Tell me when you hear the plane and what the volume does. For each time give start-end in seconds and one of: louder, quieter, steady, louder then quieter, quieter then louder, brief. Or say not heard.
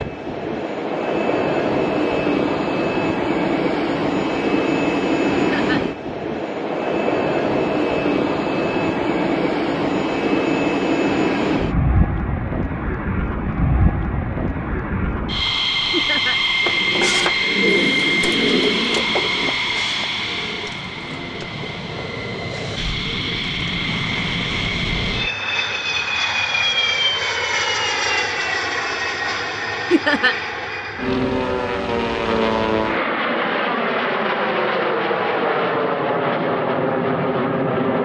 0.0-37.9 steady.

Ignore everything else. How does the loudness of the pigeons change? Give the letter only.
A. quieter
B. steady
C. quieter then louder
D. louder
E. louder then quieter
A.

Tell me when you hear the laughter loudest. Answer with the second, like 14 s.
30 s.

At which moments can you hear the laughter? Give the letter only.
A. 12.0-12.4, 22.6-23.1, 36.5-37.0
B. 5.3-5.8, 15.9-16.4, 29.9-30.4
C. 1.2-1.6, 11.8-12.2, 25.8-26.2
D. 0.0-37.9
B.